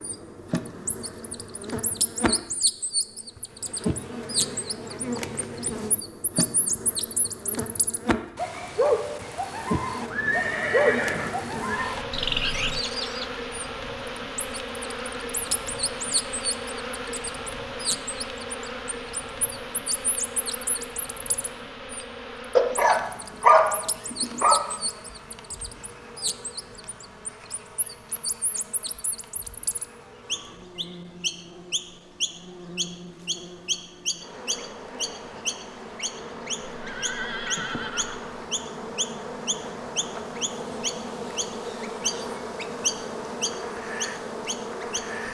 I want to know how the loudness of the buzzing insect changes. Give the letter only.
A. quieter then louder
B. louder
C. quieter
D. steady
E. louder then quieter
A.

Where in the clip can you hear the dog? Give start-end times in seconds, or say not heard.
22.6-24.6.